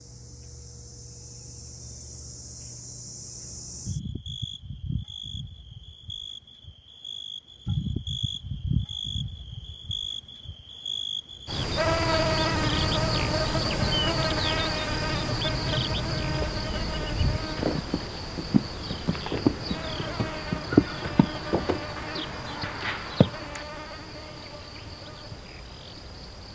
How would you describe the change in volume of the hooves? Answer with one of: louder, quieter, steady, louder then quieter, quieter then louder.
louder then quieter.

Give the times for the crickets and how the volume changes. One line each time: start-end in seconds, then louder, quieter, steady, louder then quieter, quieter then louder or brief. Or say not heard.
0.0-26.5 louder then quieter.